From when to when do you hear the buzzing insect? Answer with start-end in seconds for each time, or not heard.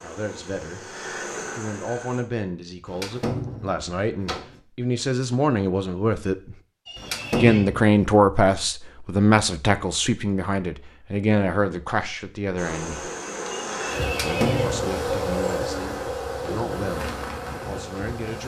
0.0-2.2, 12.6-18.4.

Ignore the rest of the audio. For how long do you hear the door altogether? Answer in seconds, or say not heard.
4 s.